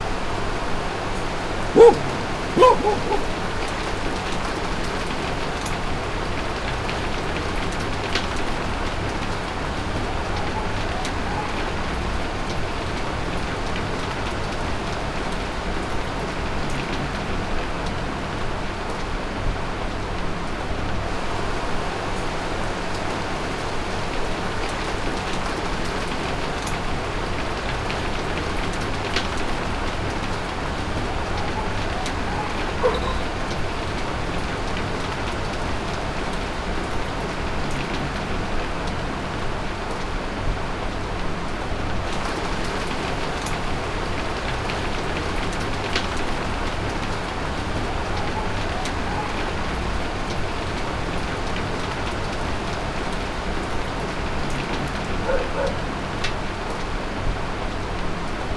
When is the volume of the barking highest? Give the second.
2 s.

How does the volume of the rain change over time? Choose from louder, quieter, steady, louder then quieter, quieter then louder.
steady.